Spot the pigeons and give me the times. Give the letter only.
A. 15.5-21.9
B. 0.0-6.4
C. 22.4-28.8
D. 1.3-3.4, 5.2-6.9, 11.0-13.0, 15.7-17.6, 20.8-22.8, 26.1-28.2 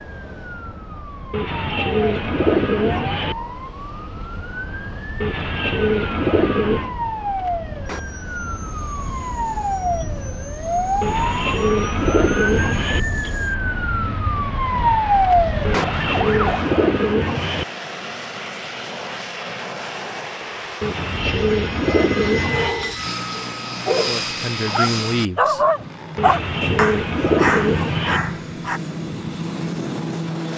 D.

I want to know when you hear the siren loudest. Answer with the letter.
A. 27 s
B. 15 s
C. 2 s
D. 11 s
B.